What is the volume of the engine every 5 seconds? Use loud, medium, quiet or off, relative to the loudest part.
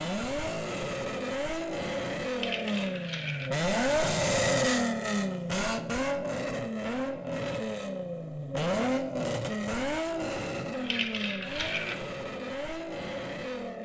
loud, loud, medium.